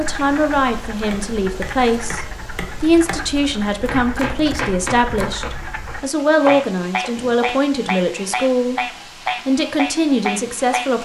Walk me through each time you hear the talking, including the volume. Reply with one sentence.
The talking can be heard from 0.0 to 10.9 s, at a steady volume.